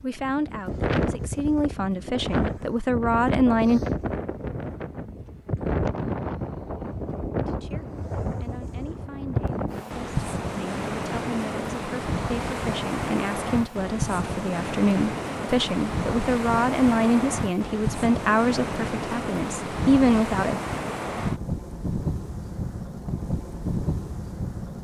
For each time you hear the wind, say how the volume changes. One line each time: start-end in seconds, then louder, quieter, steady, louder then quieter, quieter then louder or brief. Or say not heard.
0.0-24.7 steady.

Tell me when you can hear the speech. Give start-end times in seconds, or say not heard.
0.0-3.8, 7.4-20.6.